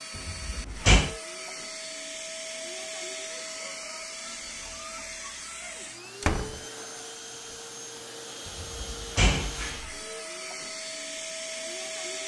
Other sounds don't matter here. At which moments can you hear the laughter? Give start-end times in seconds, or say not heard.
not heard.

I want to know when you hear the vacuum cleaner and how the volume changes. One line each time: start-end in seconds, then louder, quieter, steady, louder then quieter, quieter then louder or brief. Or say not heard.
0.0-12.2 steady.